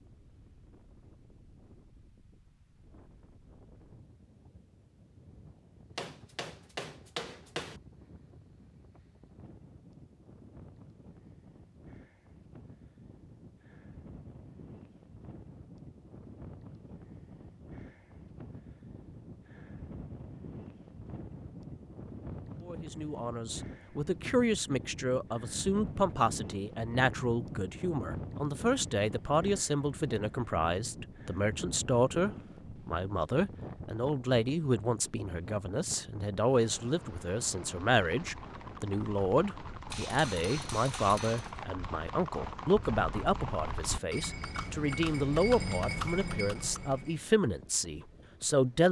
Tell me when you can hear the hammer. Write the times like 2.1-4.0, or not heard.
6.0-7.8, 39.9-41.6.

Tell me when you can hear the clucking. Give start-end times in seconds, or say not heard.
not heard.